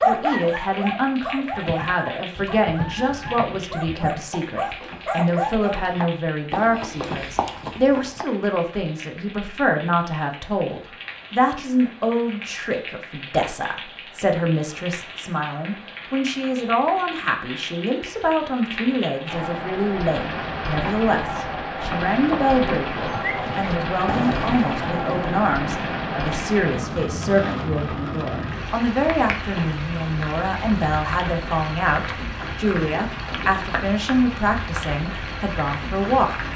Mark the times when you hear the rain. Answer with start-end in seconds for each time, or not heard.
0.0-36.5.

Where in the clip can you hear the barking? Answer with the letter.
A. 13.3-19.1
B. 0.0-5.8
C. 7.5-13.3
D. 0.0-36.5
B.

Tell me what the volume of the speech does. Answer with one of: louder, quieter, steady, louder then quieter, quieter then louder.
steady.